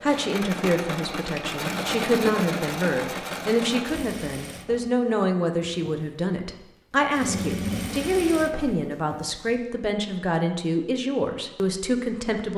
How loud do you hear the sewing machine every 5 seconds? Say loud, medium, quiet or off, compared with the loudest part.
loud, loud, off.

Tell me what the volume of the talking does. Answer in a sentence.
The volume of the talking stays about the same.